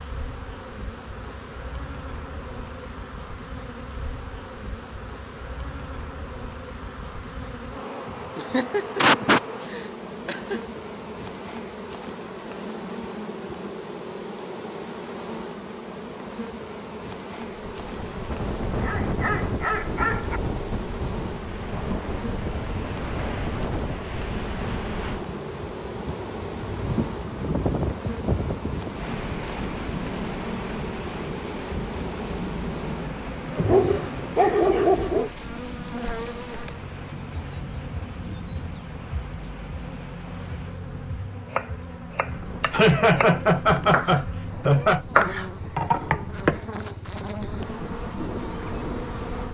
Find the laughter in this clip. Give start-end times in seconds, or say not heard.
8.3-10.6, 42.7-45.0.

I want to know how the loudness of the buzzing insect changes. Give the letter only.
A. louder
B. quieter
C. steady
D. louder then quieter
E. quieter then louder
C.